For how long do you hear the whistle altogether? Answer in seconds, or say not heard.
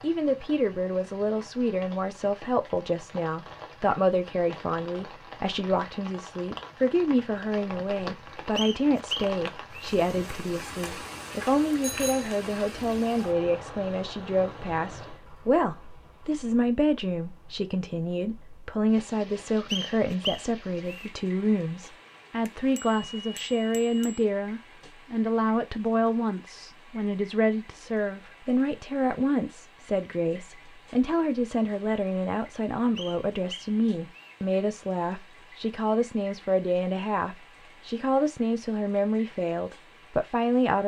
4 s.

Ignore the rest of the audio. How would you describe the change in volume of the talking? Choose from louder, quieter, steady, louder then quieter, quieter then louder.
steady.